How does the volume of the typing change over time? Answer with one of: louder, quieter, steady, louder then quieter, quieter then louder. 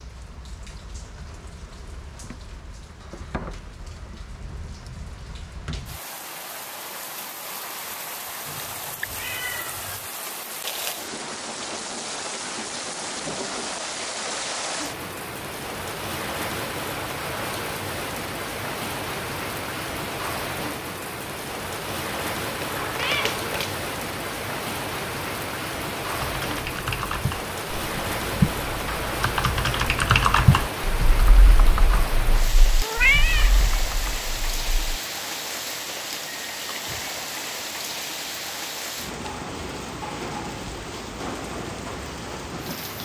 louder then quieter.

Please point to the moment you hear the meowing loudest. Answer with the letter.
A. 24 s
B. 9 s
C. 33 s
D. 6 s
C.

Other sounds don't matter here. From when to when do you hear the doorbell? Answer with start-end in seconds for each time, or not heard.
not heard.